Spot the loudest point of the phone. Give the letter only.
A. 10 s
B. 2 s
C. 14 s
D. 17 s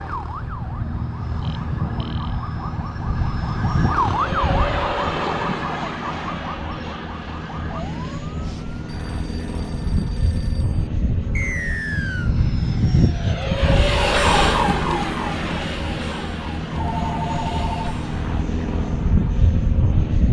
D.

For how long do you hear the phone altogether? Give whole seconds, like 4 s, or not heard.
4 s.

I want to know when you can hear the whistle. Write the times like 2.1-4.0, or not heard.
11.3-12.3.